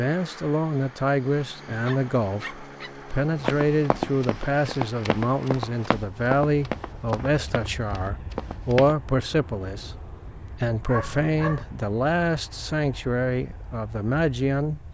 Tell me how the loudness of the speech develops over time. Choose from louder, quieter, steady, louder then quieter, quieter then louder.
steady.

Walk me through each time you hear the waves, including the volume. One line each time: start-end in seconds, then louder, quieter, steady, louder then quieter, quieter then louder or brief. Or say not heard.
not heard.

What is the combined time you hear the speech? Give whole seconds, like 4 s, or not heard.
15 s.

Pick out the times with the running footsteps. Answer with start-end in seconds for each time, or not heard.
3.4-8.9.